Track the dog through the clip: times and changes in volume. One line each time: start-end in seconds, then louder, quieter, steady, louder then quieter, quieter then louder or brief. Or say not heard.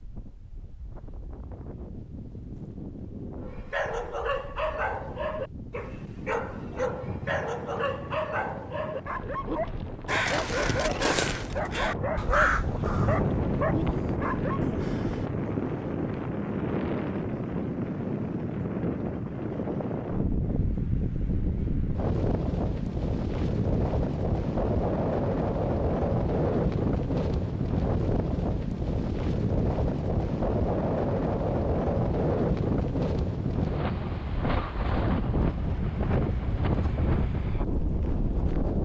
3.4-14.7 steady.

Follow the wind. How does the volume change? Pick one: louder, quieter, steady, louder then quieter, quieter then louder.
louder.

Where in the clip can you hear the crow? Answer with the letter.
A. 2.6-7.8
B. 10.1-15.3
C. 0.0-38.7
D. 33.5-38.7
B.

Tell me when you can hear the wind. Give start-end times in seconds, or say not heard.
0.0-38.7.